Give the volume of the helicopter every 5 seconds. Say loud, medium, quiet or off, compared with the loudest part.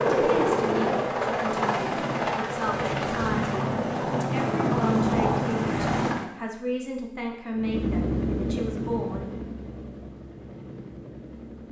loud, loud, quiet.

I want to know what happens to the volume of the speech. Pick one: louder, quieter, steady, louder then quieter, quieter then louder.
steady.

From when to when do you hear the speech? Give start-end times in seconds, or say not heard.
0.0-9.3.